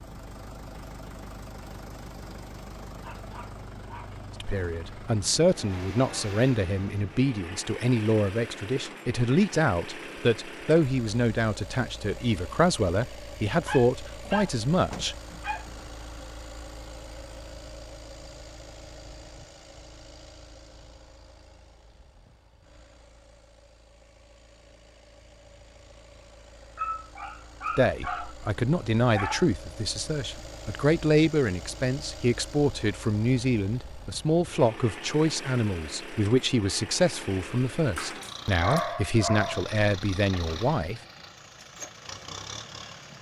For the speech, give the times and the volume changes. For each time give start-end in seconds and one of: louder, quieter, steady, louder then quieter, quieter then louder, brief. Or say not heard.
4.4-15.2 steady
27.8-41.0 steady.